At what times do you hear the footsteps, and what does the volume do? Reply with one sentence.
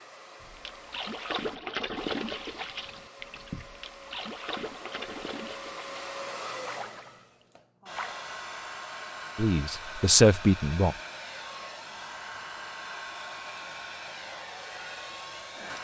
You can't hear the footsteps here.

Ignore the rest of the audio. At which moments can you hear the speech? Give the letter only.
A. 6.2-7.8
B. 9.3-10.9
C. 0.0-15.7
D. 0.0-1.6
B.